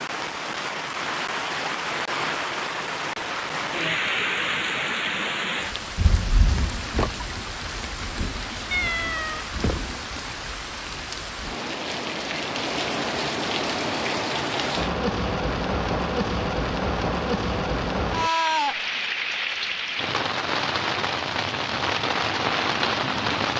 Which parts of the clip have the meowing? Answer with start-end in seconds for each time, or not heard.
8.7-9.4.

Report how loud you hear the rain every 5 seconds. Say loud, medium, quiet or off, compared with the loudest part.
loud, medium, loud, loud, loud.